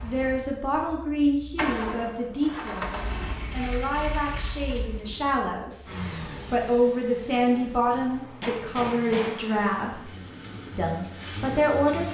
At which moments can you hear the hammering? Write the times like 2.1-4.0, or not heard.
7.9-9.4.